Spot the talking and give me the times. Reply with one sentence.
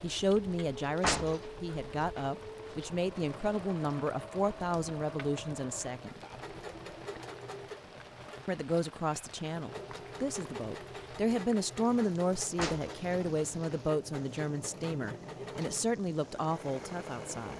You can hear the talking from 0.0 to 6.2 s and from 8.4 to 17.5 s.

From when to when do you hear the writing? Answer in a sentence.
You can't hear the writing here.